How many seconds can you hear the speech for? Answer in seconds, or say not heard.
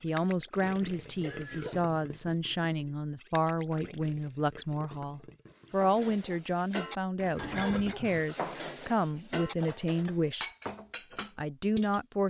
11 s.